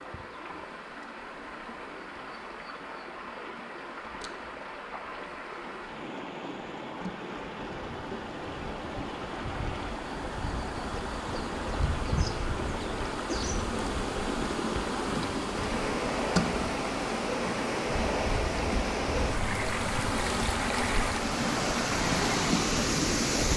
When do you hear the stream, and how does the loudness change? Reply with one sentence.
The stream can be heard from 0.0 to 23.5 s, getting louder.